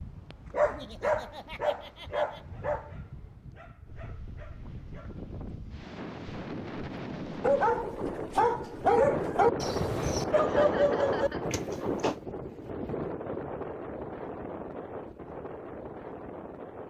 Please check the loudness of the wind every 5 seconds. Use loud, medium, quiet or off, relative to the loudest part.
quiet, loud, loud, medium.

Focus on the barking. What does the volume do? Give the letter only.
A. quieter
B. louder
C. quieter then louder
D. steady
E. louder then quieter
C.